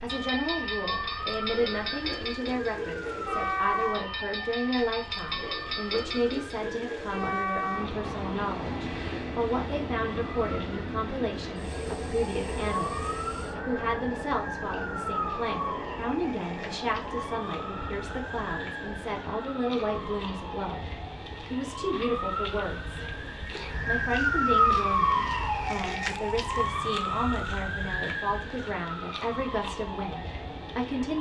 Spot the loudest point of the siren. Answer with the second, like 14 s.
25 s.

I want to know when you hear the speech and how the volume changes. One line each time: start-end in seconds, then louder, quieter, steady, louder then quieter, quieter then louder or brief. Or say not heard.
0.0-22.9 steady
23.9-31.1 steady.